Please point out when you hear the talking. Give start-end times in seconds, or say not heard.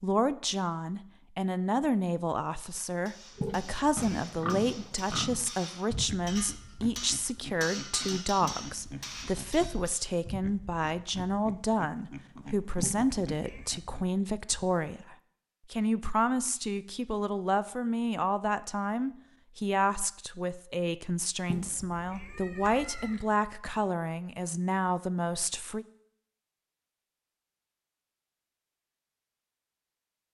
0.0-25.9.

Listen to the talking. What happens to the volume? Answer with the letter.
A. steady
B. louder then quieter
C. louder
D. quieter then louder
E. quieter
A.